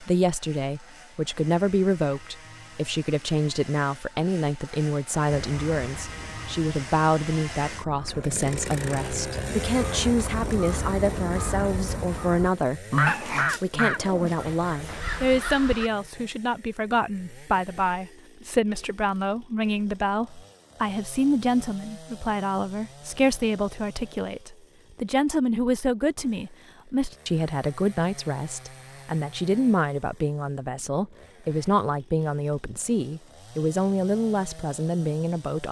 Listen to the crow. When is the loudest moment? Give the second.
13 s.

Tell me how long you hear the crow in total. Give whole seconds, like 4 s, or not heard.
11 s.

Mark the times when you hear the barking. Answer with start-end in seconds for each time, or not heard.
13.1-15.1.